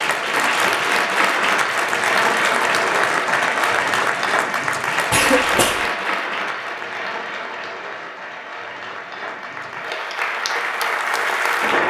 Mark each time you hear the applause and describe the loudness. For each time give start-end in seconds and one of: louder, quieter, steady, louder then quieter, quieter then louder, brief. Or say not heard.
0.0-11.8 quieter then louder.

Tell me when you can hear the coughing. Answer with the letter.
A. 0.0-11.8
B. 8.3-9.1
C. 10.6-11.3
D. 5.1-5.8
D.